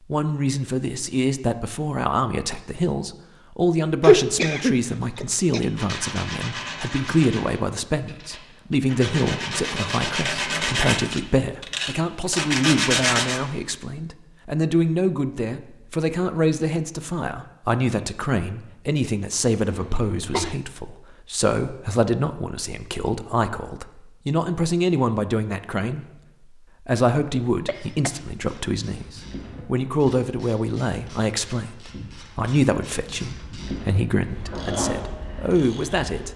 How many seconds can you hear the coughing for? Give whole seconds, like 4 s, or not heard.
3 s.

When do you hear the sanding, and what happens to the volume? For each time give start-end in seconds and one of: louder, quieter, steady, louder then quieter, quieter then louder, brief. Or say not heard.
5.5-13.4 quieter then louder.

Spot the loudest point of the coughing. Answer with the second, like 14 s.
4 s.